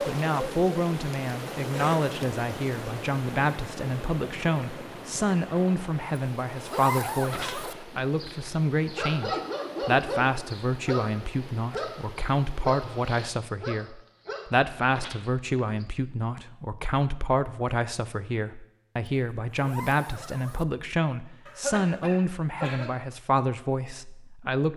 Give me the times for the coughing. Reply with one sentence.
You can hear the coughing from 1.7 to 2.1 s and from 21.4 to 22.9 s.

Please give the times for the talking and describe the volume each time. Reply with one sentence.
You can hear the talking from 0.1 to 24.7 s, at a steady volume.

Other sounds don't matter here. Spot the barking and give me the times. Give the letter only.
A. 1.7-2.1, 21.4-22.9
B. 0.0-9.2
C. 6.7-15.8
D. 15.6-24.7
C.